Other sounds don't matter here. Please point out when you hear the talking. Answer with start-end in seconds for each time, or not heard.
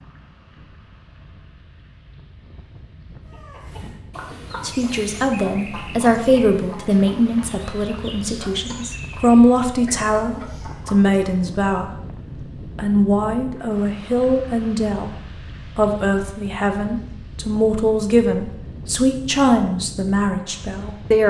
4.6-12.2, 12.8-21.2.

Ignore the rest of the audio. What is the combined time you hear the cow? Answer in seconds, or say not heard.
not heard.